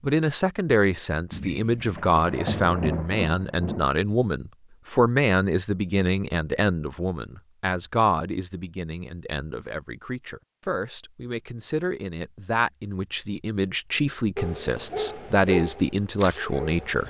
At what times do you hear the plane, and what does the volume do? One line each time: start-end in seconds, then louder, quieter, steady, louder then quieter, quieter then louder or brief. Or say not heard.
not heard.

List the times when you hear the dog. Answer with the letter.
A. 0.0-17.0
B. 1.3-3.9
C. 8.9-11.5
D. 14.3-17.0
D.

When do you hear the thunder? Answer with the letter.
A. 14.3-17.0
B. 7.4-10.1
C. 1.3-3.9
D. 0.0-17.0
C.